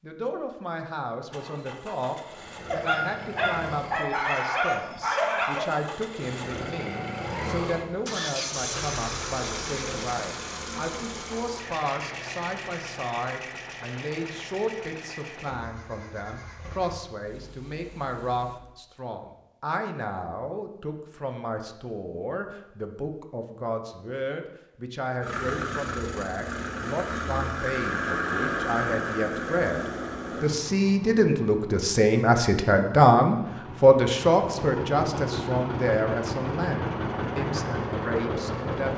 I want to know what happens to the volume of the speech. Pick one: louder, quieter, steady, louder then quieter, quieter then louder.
louder.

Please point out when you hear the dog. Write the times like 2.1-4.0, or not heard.
2.7-5.7.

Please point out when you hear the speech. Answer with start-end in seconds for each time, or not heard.
0.0-29.8, 30.4-38.9.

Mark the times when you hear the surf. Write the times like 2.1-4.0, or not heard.
not heard.